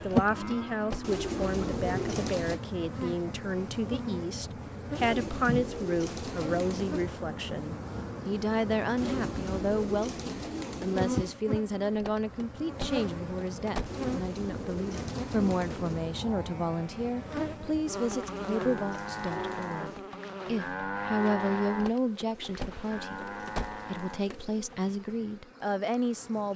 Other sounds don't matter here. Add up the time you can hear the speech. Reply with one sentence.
The speech can be heard for 26 seconds in total.